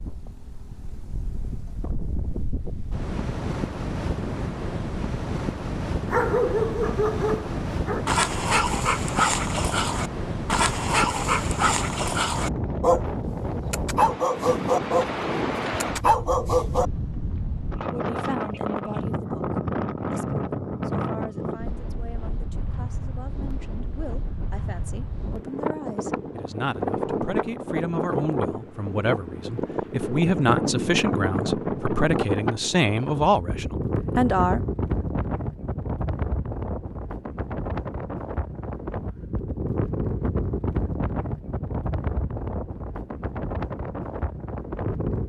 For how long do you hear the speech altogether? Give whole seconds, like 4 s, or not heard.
17 s.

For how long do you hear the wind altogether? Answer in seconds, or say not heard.
45 s.